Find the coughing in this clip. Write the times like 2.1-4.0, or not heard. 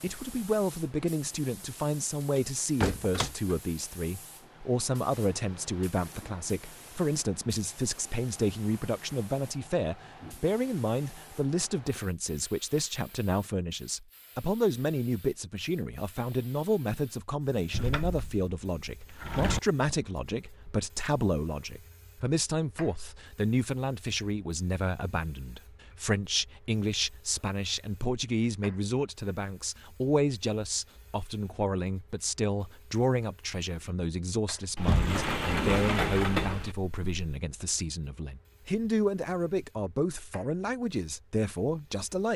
not heard.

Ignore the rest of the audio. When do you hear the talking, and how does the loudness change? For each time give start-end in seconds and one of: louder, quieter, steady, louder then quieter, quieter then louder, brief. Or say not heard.
0.0-42.3 steady.